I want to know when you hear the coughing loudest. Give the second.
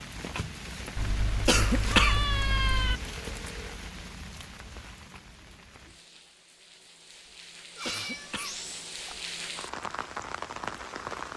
2 s.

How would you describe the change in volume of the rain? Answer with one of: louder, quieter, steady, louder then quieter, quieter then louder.
quieter then louder.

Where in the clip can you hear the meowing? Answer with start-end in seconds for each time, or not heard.
0.9-3.0, 7.8-9.2.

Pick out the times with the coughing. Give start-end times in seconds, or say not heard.
1.4-2.2, 7.8-8.6.